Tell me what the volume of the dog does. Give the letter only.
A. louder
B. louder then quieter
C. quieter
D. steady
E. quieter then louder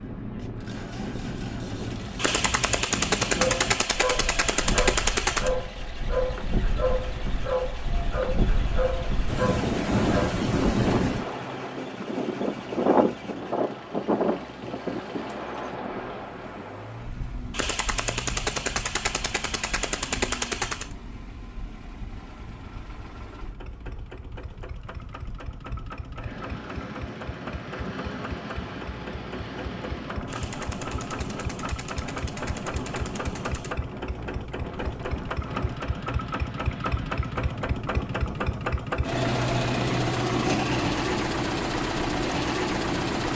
D.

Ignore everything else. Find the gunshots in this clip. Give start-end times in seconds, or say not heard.
2.1-5.5, 17.5-20.9, 30.2-33.8.